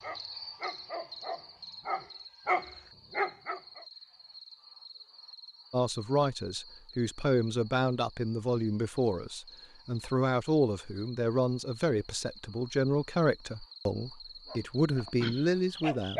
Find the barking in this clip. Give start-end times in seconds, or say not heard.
0.0-3.9, 14.5-16.1.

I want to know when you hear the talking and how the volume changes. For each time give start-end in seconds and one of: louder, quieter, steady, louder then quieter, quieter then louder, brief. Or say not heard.
5.7-16.1 steady.